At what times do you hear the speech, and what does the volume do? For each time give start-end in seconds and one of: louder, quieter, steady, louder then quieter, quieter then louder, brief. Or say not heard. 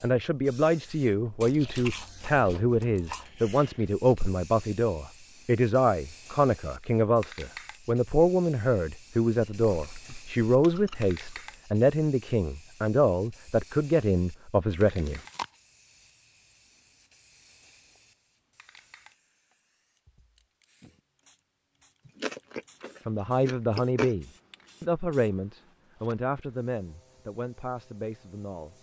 0.0-15.2 steady
23.1-28.7 quieter.